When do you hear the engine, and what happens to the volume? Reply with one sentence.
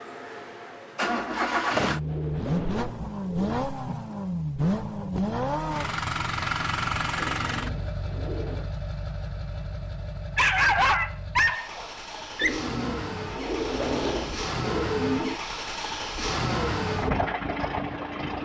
You can hear the engine from 0.0 to 18.4 s, getting quieter then louder.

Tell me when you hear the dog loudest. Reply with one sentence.
The volume of the dog peaks at 11 seconds.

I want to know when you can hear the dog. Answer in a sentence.
You can hear the dog from 10.3 to 12.6 s.